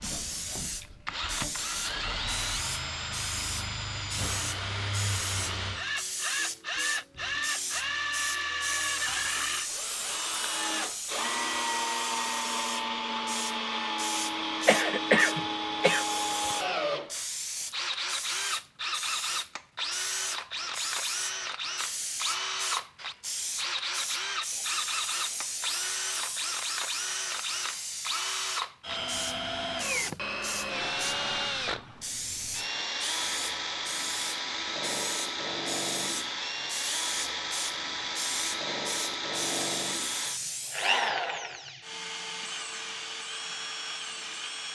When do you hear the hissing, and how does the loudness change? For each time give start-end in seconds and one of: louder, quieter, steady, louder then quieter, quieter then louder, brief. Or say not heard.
0.0-41.0 steady.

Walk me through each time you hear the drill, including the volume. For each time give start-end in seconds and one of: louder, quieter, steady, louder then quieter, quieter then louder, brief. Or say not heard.
0.0-44.6 steady.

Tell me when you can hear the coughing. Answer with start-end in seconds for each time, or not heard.
14.7-16.1.